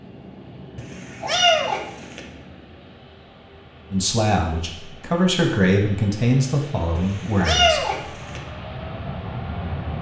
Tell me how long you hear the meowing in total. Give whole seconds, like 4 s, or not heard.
3 s.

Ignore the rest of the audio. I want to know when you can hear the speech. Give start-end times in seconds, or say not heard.
3.9-8.1.